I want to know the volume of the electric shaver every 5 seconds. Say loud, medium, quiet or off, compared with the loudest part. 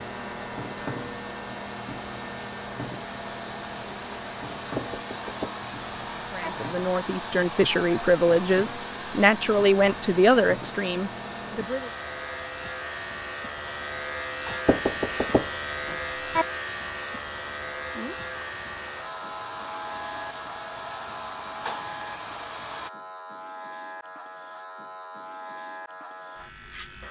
loud, medium, loud, loud, medium, medium.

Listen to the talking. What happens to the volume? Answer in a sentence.
The volume of the talking goes up, then down.